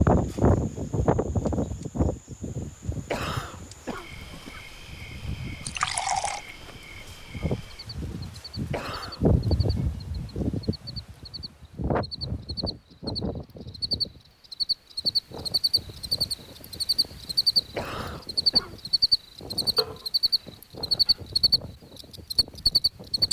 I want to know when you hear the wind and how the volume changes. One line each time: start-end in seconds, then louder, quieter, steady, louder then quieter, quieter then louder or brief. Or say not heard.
0.0-23.2 quieter.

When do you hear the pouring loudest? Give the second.
6 s.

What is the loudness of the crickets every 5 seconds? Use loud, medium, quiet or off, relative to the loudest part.
quiet, quiet, medium, loud, loud.